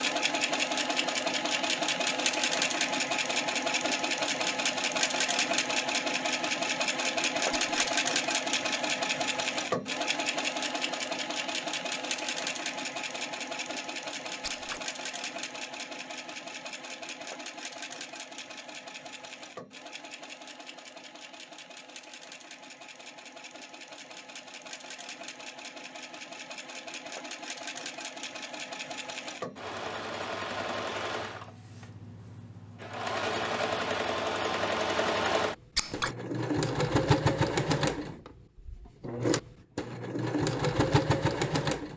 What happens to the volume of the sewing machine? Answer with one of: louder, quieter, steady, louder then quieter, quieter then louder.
quieter then louder.